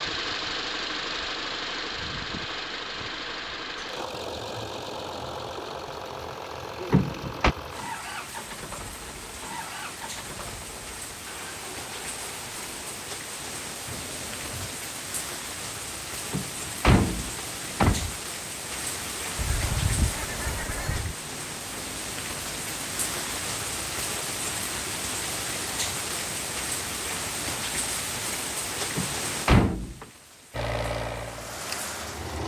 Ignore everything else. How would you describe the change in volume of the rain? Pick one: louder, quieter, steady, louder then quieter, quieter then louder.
louder.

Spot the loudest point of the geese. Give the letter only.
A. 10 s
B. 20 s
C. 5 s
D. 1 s
B.